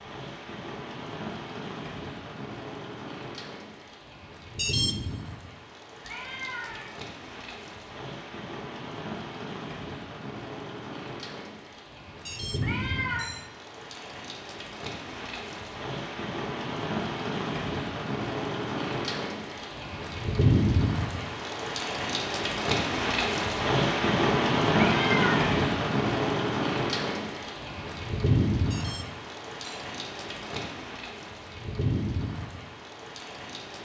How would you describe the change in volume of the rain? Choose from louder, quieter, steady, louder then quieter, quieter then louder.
louder then quieter.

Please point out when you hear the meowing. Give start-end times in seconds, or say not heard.
6.0-7.0, 12.6-13.3, 24.7-25.5.